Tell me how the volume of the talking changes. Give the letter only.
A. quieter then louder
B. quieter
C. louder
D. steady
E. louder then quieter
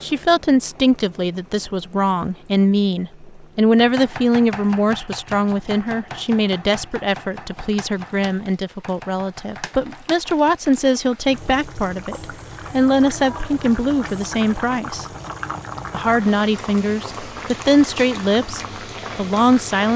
D.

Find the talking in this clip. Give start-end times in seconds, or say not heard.
0.0-15.1, 15.9-19.9.